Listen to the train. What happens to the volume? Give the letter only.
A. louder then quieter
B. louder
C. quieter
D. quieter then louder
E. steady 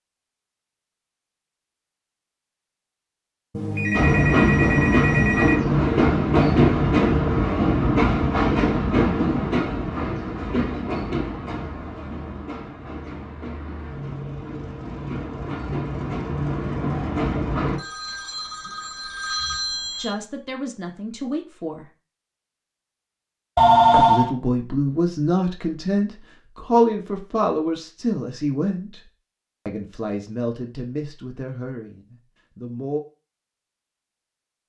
D.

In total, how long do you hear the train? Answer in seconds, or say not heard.
14 s.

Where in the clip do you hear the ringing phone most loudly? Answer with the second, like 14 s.
24 s.